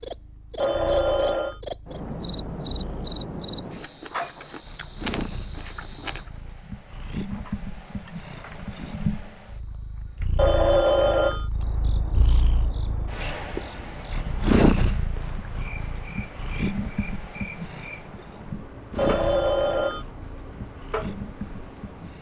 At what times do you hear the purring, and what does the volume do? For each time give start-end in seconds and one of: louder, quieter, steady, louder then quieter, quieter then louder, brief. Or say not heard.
0.0-22.1 louder then quieter.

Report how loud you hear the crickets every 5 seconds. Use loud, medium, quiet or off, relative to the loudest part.
loud, medium, quiet, quiet, quiet.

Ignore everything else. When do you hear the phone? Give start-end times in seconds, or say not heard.
0.6-1.6, 10.3-11.4, 18.9-20.1.